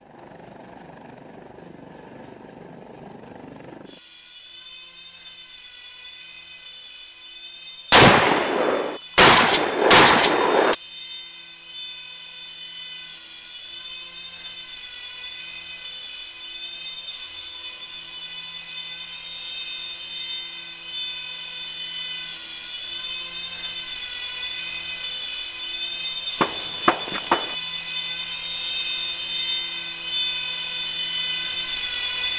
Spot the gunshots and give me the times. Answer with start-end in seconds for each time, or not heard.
7.9-10.8, 26.4-27.5.